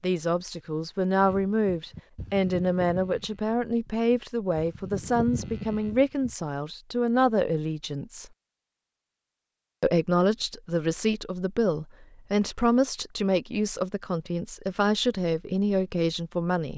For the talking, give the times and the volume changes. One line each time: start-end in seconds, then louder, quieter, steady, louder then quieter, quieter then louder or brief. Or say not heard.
0.0-8.3 steady
9.8-16.7 steady.